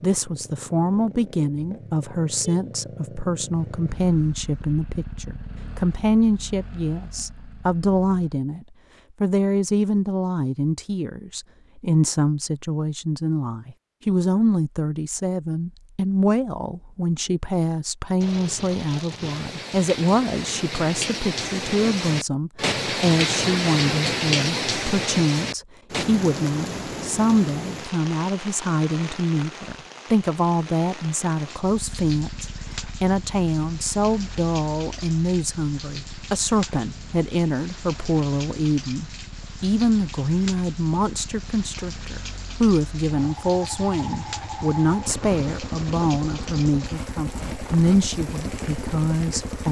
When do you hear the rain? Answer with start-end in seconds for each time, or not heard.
18.2-49.6.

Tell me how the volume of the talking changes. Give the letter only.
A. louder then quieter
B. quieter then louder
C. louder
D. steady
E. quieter
D.